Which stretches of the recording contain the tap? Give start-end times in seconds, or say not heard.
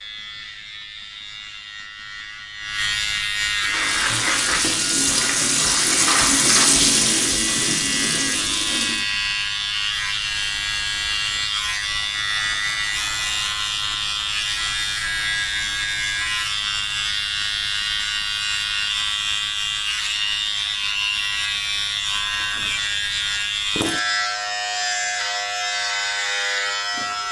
3.5-9.1.